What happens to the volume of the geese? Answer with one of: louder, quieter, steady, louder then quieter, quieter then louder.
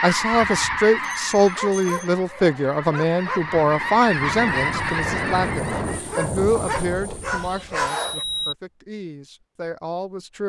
quieter then louder.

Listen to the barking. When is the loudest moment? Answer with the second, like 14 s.
8 s.